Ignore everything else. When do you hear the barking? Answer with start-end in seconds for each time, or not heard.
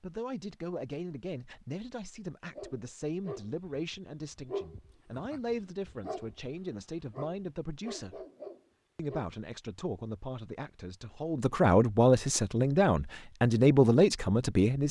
2.5-6.5, 7.1-9.3.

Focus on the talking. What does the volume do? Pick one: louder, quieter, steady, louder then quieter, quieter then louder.
louder.